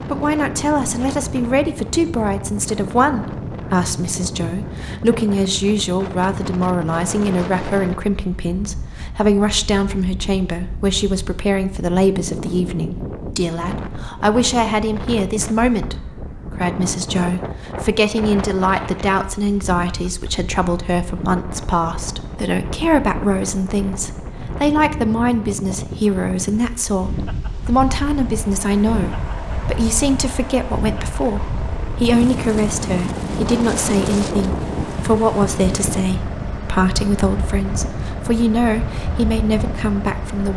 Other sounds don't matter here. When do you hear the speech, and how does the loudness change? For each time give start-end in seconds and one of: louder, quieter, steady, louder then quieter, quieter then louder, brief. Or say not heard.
0.1-40.5 steady.